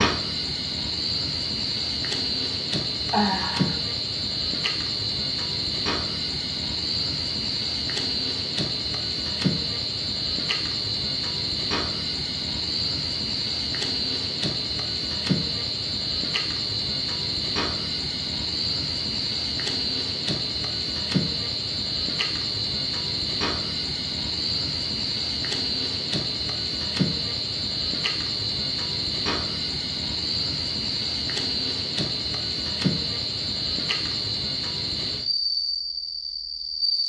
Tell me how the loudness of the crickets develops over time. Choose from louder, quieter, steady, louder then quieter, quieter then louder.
steady.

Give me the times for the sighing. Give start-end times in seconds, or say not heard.
3.1-3.8.